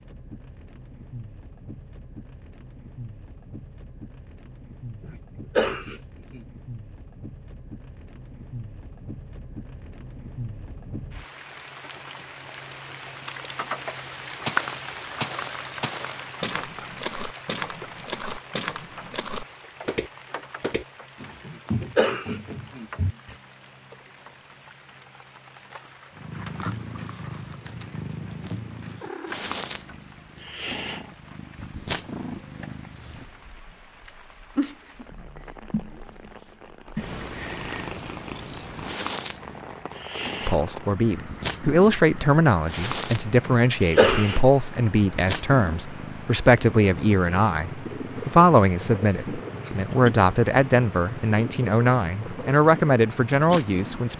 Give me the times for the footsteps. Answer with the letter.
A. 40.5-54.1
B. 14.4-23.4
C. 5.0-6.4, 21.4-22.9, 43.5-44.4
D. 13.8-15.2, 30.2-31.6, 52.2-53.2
B.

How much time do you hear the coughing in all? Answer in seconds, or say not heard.
4 s.